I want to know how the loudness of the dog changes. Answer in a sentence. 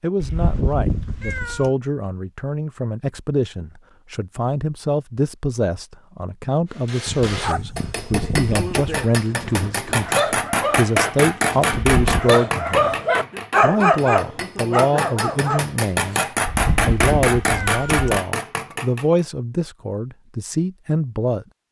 The volume of the dog goes up.